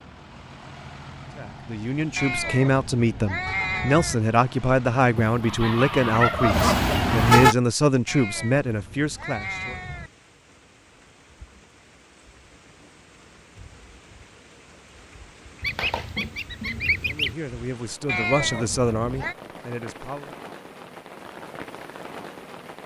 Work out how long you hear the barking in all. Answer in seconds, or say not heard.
not heard.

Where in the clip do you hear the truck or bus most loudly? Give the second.
7 s.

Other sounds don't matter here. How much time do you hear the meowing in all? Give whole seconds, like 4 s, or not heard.
5 s.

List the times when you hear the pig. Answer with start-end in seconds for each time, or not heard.
not heard.